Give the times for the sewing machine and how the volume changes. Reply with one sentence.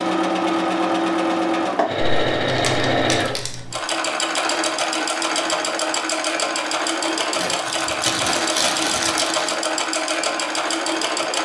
The sewing machine can be heard from 0.0 to 11.4 s, at a steady volume.